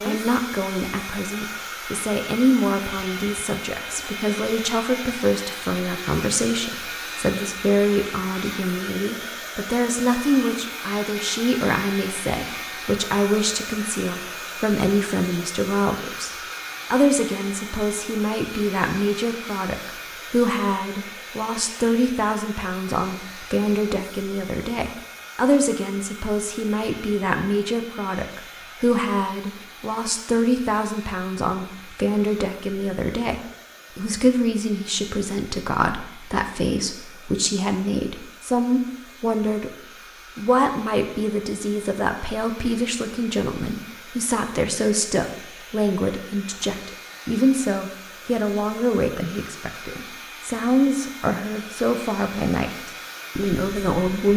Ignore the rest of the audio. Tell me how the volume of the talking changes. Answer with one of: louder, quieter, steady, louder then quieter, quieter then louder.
steady.